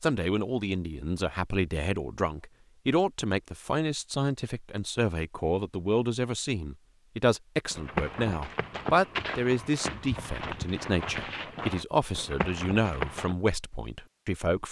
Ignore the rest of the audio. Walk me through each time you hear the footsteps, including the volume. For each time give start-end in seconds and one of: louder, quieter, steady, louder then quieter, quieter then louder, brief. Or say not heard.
7.7-13.3 steady.